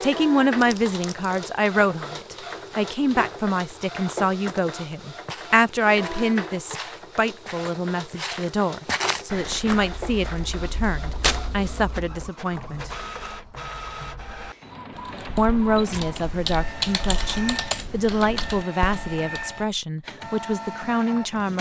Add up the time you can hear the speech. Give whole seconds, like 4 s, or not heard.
19 s.